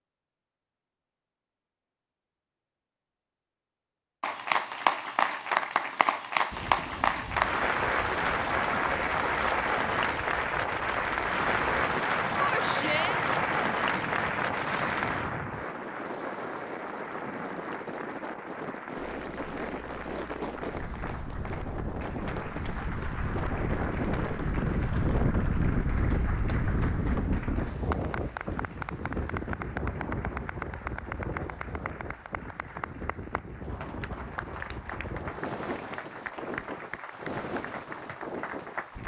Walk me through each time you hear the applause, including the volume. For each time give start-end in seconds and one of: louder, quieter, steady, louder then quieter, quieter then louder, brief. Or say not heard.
4.2-39.0 quieter.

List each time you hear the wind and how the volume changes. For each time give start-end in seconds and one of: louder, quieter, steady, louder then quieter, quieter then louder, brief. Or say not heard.
6.5-39.0 louder then quieter.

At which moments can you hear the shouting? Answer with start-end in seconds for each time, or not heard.
12.3-13.2.